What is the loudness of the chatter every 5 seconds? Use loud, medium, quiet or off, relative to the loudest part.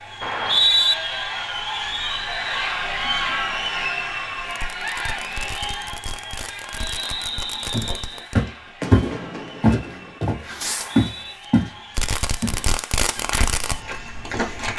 loud, medium, quiet.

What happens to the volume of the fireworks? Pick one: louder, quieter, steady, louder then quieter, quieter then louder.
louder.